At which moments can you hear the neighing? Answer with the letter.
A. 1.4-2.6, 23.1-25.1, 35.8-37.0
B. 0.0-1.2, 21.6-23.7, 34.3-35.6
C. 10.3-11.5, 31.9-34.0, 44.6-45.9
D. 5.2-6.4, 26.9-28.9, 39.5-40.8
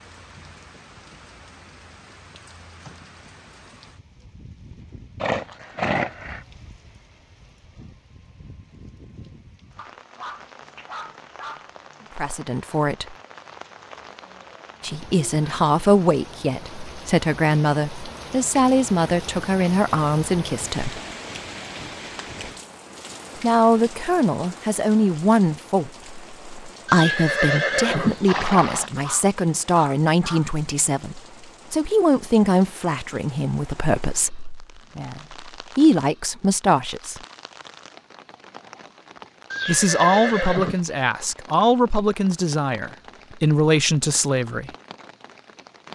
D.